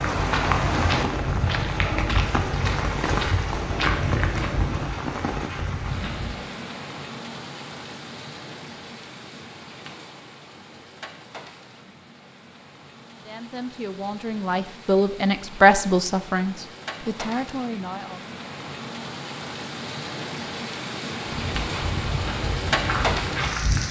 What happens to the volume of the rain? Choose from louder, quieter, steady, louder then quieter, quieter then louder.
quieter then louder.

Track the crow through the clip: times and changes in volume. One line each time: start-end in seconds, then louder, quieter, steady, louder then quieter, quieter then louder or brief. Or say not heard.
not heard.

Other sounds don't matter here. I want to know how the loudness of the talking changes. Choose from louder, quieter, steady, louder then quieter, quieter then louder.
louder then quieter.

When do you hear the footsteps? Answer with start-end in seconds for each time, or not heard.
0.0-6.5, 21.2-23.8.